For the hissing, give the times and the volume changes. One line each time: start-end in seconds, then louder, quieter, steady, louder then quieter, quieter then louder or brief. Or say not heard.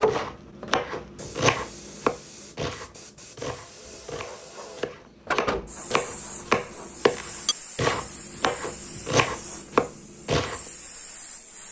0.0-11.6 louder then quieter.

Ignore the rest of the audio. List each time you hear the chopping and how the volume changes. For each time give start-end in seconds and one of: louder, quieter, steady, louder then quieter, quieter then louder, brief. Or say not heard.
0.1-10.7 quieter then louder.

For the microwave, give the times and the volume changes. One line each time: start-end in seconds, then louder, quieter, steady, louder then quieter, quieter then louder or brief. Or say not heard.
not heard.